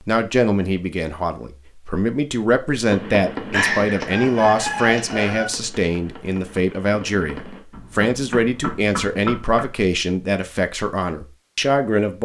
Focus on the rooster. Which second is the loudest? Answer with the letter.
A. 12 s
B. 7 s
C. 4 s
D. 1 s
C.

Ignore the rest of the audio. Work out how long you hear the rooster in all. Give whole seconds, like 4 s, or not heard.
2 s.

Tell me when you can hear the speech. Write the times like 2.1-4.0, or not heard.
0.1-12.2.